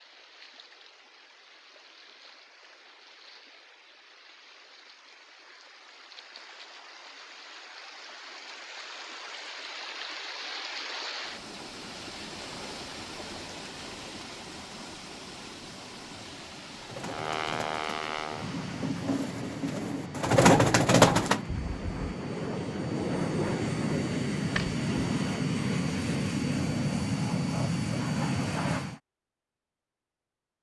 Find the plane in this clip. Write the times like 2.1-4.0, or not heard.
17.0-29.0.